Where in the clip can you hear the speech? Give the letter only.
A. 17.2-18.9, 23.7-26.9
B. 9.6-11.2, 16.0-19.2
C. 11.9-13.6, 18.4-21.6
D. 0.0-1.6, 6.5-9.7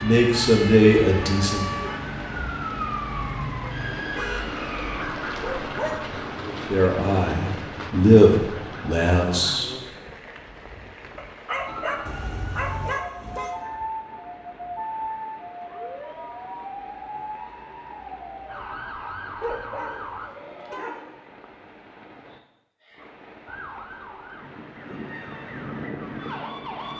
D.